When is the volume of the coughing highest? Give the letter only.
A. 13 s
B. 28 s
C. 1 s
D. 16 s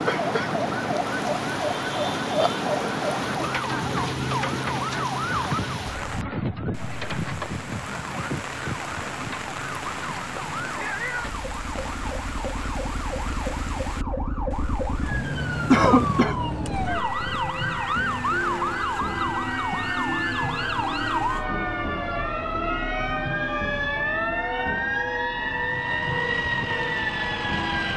D.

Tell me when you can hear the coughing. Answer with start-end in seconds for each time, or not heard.
0.1-0.5, 15.7-16.4.